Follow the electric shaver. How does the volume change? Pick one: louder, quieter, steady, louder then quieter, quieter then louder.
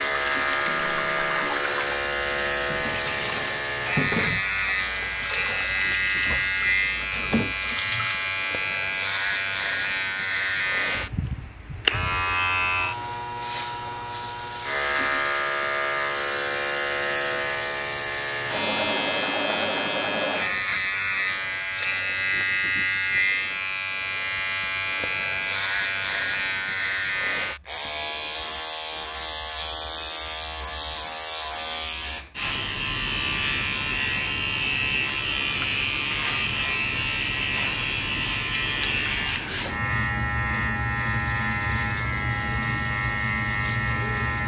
steady.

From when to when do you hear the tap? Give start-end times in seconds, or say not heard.
0.1-8.2.